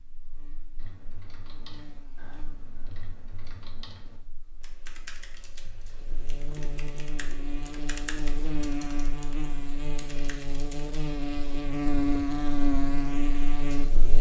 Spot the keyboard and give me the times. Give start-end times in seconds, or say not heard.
0.8-10.9.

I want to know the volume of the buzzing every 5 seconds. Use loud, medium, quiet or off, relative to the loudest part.
quiet, medium, loud.